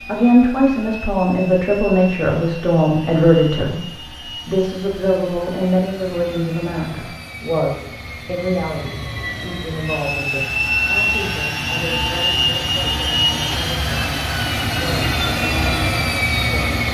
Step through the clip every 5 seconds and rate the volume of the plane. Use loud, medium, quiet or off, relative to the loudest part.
quiet, quiet, loud, loud.